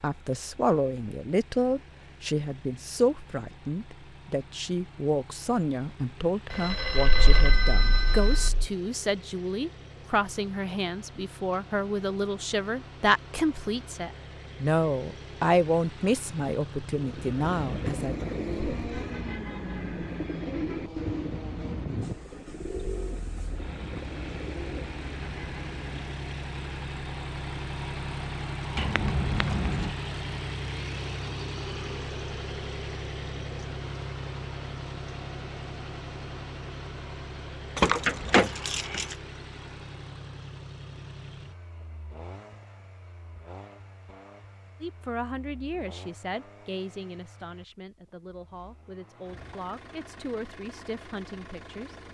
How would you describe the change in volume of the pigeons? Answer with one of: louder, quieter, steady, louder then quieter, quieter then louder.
quieter.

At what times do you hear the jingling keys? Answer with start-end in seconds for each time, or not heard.
7.0-8.7, 28.8-29.9, 37.8-39.1.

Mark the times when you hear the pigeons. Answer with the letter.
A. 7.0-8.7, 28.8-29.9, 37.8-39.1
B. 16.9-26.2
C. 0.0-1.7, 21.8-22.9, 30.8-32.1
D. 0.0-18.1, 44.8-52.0
B.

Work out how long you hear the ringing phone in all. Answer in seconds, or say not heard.
2 s.